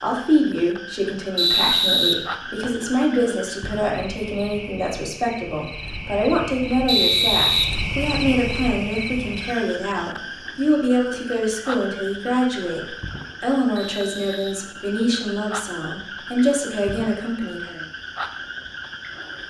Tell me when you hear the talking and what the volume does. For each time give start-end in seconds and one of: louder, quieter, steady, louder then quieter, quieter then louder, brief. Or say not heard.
0.0-17.8 steady.